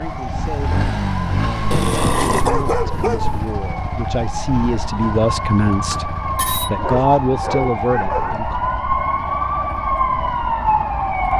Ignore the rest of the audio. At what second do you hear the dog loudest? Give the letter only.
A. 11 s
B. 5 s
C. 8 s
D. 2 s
D.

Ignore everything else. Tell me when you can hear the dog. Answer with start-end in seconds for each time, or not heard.
1.7-3.5, 6.8-8.4.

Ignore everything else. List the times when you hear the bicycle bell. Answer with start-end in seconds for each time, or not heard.
5.7-6.7.